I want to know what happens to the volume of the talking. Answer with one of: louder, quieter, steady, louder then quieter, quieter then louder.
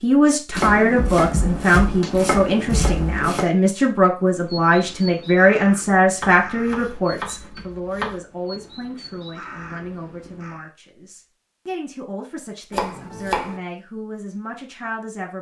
quieter.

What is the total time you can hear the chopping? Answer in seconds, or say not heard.
6 s.